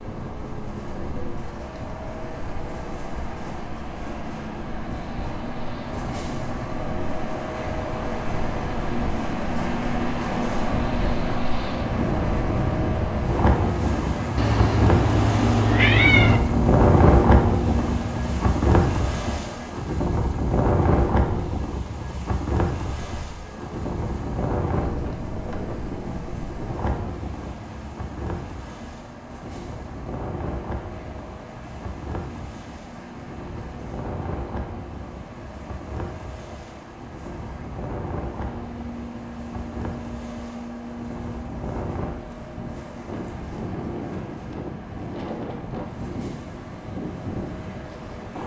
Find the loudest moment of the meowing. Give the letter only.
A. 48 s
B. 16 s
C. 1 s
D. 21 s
B.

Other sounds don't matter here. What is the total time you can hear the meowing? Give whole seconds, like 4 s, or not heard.
2 s.